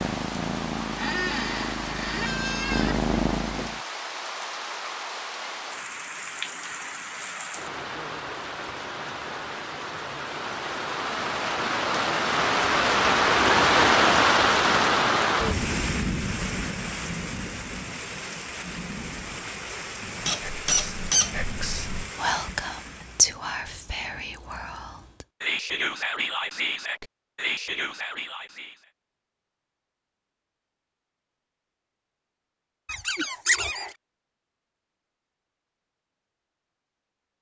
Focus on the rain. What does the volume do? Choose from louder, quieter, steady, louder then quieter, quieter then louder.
louder then quieter.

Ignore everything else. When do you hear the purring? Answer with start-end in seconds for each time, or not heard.
0.0-3.8.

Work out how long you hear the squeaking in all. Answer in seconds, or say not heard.
4 s.